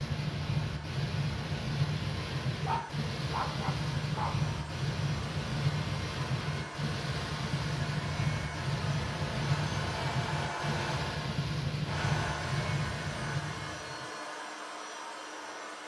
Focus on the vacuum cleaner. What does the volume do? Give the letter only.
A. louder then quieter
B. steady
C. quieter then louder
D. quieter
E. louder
E.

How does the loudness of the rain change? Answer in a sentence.
The loudness of the rain stays about the same.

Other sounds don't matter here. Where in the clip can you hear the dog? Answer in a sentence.
You can hear the dog from 2.6 to 4.5 s.